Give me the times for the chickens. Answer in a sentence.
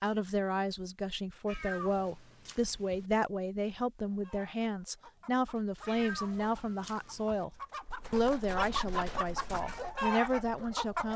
You can hear the chickens from 4.0 to 11.1 s.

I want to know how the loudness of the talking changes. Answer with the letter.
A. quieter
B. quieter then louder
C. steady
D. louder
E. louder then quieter
C.